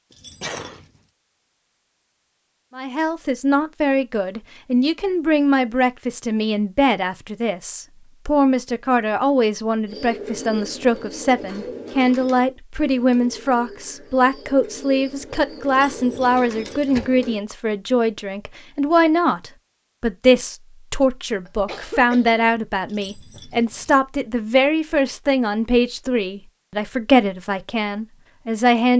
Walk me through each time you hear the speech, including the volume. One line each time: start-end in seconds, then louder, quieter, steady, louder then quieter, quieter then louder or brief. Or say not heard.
2.8-28.9 steady.